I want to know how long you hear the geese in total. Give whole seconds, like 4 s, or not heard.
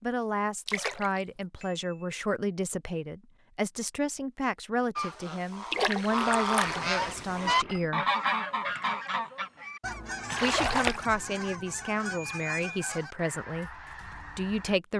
10 s.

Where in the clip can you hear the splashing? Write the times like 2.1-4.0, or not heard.
0.7-1.4, 5.7-7.0, 10.3-11.1.